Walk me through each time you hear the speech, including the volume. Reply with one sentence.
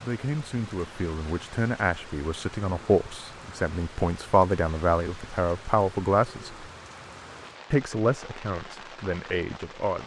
You can hear the speech from 0.0 to 6.7 s, getting louder; and briefly from 7.7 to 10.0 s.